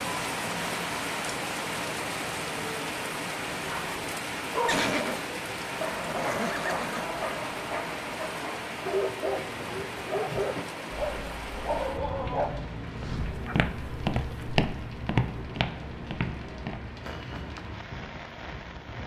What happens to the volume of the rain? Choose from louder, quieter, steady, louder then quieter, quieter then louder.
quieter.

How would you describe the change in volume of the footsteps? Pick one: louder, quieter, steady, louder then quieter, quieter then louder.
quieter.